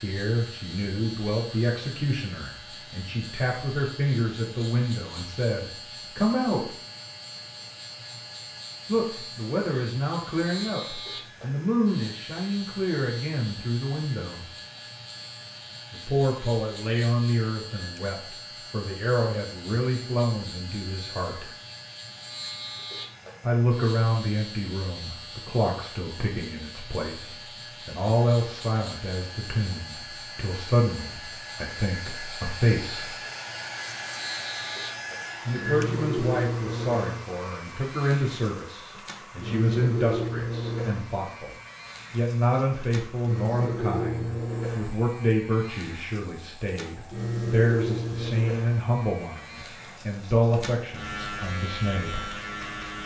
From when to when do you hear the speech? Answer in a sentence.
You can hear the speech from 0.0 to 6.7 s, from 8.8 to 14.4 s, from 15.9 to 21.5 s, from 23.4 to 33.1 s and from 35.5 to 52.3 s.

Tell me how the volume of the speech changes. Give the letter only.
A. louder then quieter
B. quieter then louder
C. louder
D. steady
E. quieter
D.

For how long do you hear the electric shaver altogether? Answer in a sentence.
You can hear the electric shaver for 53 seconds altogether.